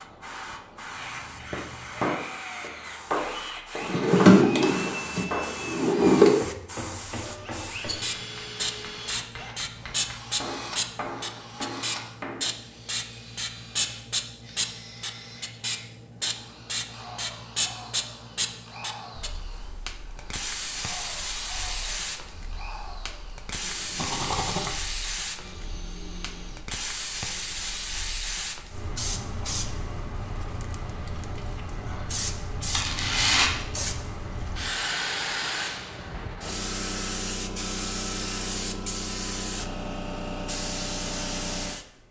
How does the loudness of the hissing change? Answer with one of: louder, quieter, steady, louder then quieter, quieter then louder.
louder.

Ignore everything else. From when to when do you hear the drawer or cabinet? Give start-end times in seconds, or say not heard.
3.8-6.3.